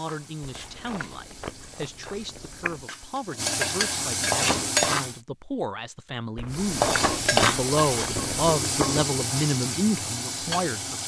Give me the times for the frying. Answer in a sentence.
You can hear the frying from 0.0 to 5.2 s and from 6.5 to 11.0 s.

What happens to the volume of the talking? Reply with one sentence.
The loudness of the talking goes up.